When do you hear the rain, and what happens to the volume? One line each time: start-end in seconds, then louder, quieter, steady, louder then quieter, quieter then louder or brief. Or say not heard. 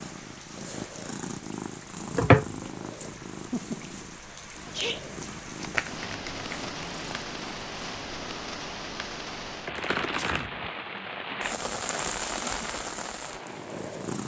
0.0-14.2 louder.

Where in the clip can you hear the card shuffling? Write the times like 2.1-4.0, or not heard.
2.1-2.6, 5.6-7.0, 9.7-10.5.